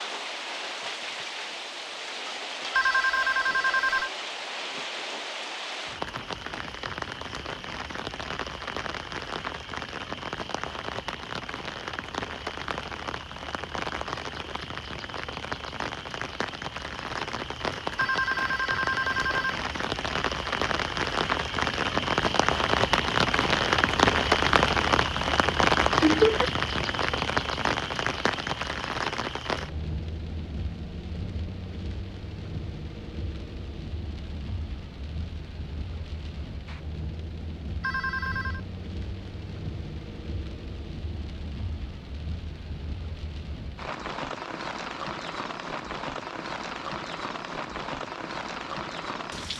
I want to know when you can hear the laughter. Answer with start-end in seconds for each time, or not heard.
26.0-26.5.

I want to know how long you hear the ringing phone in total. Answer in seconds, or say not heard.
4 s.